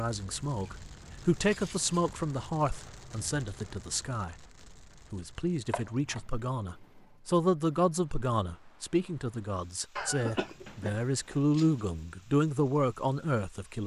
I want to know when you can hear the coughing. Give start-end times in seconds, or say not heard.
9.9-11.0.